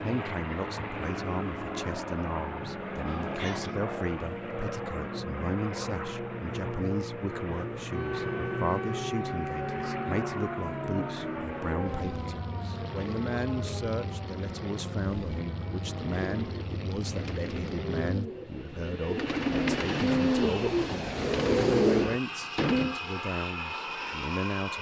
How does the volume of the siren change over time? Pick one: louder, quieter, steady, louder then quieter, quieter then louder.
quieter.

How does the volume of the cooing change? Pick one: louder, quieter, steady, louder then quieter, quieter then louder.
louder.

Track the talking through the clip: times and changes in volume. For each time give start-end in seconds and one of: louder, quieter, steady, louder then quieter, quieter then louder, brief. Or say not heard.
0.0-24.7 steady.